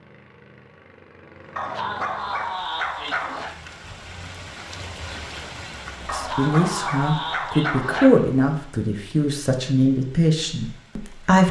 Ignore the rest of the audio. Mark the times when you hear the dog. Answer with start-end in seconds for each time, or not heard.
1.6-3.5, 6.0-8.1.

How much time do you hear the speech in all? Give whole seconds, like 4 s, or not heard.
5 s.